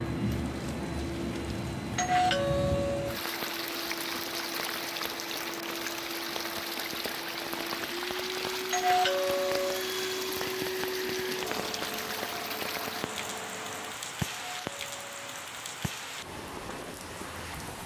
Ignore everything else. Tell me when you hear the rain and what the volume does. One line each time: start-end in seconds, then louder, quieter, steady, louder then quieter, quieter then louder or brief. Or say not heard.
0.0-17.8 steady.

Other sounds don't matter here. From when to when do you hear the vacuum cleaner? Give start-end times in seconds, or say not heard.
0.0-13.9.